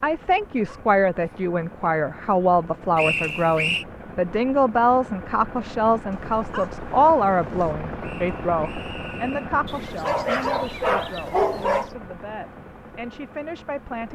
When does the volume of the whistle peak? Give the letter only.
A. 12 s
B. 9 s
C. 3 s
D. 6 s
C.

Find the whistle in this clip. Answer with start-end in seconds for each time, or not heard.
3.0-3.9, 8.0-9.5.